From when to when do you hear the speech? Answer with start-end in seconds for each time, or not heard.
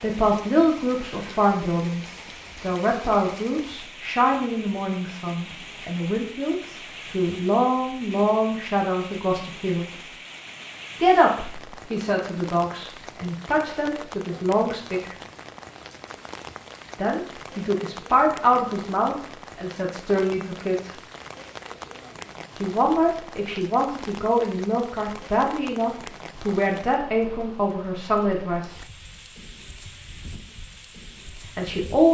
0.0-10.1, 11.0-15.2, 16.9-20.9, 22.6-28.8, 31.6-32.0.